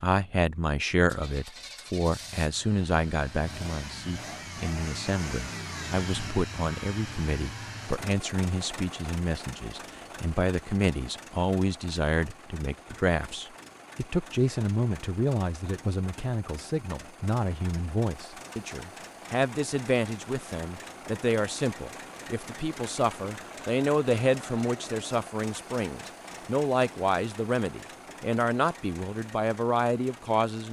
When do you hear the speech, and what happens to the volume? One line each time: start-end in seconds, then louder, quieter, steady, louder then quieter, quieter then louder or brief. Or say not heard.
0.0-30.6 steady.